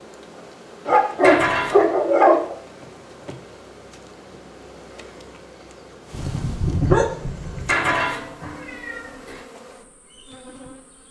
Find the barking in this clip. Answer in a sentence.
The barking can be heard from 0.8 to 2.5 s and from 6.1 to 7.8 s.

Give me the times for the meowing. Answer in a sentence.
The meowing can be heard from 1.2 to 1.9 s and from 7.7 to 9.4 s.